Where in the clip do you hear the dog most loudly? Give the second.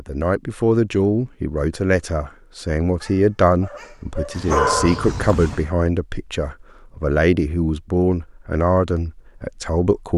5 s.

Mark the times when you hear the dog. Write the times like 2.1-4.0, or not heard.
3.0-5.7.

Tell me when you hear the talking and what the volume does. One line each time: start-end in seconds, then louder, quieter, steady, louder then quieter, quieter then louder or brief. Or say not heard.
0.0-10.1 steady.